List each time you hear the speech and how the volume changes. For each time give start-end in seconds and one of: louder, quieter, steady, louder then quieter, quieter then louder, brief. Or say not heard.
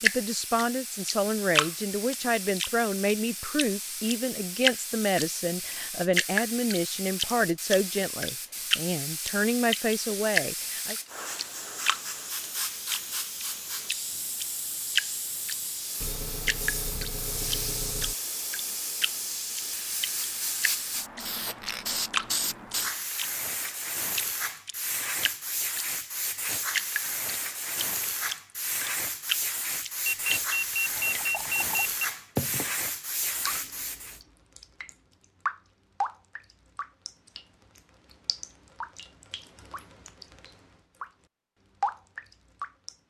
0.0-10.9 steady.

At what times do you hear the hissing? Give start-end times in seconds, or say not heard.
0.0-34.2.